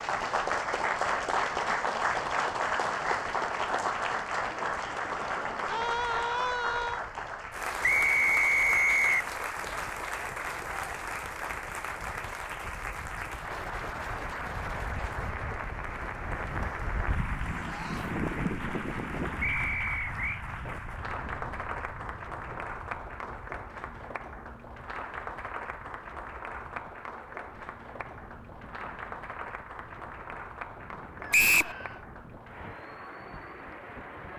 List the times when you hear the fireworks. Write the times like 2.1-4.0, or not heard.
not heard.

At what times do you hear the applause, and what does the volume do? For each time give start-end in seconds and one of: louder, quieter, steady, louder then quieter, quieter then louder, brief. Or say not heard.
0.0-34.3 quieter.